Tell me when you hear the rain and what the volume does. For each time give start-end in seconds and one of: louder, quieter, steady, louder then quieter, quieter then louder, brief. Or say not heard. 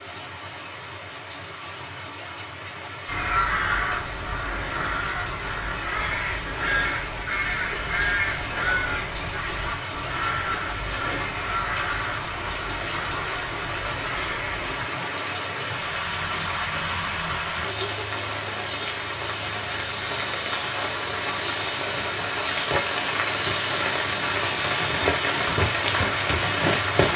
0.0-27.1 louder.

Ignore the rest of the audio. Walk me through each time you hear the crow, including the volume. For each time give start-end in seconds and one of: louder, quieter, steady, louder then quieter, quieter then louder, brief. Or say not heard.
3.0-14.8 quieter.